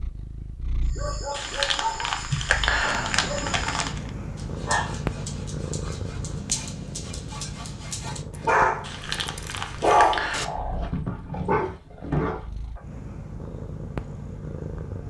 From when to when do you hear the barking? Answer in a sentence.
The barking can be heard from 0.8 to 12.8 s.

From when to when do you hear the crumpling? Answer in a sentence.
The crumpling can be heard from 1.3 to 4.1 s and from 8.8 to 10.5 s.